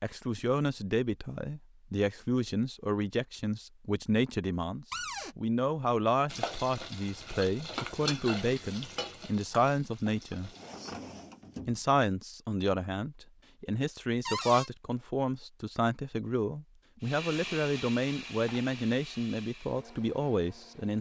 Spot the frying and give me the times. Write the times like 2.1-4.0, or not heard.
6.3-10.8.